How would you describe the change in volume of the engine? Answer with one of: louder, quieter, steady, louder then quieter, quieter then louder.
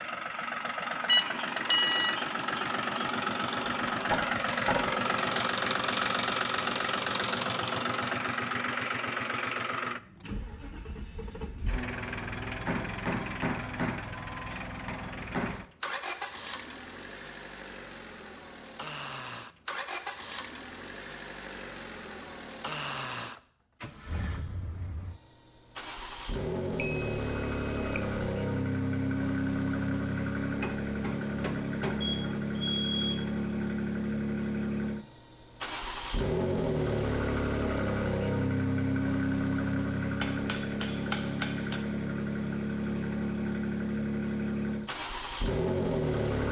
quieter then louder.